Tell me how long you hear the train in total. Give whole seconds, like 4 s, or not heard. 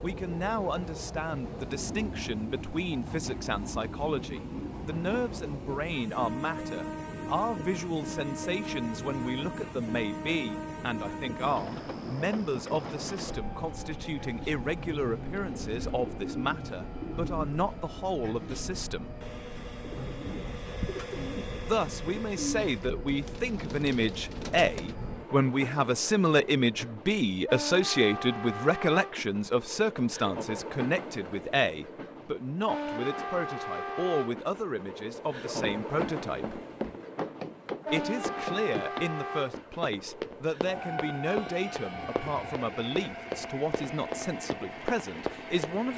46 s.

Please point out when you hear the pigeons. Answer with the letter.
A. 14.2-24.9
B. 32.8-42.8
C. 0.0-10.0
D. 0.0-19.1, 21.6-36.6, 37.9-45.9
A.